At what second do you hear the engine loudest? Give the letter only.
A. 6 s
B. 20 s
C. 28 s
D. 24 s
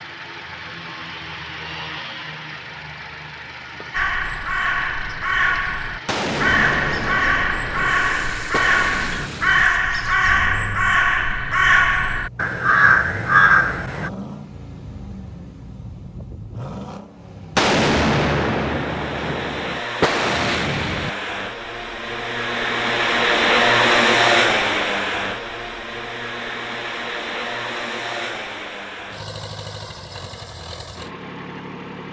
D.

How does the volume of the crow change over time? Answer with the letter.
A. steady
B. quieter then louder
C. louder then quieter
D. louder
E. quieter
D.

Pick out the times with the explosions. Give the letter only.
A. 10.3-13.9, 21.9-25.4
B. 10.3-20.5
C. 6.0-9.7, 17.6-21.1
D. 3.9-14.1
C.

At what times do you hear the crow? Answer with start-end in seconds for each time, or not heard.
3.9-14.1.